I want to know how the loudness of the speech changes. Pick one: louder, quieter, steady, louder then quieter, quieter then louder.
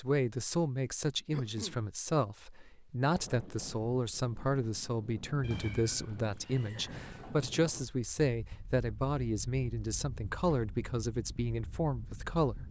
steady.